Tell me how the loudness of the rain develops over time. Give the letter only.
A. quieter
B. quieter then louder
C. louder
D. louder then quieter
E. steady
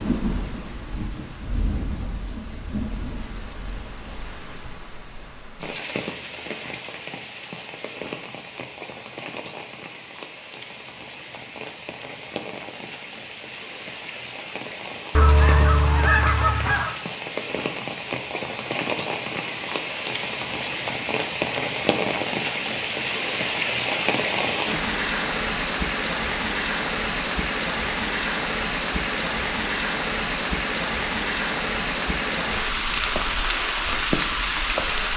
C.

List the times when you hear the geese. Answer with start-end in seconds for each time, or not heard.
15.2-16.9.